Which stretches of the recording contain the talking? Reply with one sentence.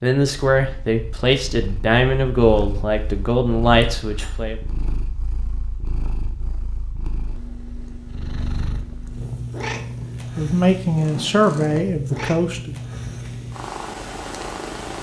You can hear the talking from 0.0 to 4.5 s and from 10.3 to 12.8 s.